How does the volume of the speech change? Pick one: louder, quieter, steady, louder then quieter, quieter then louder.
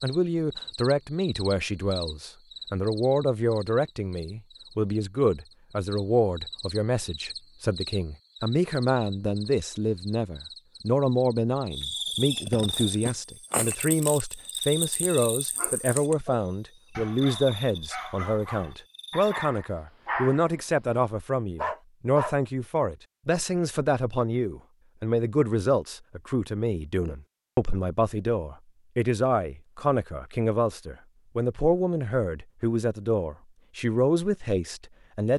steady.